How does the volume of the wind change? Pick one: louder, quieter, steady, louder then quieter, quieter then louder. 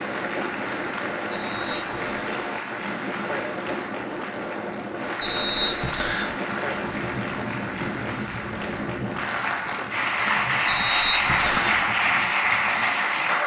quieter.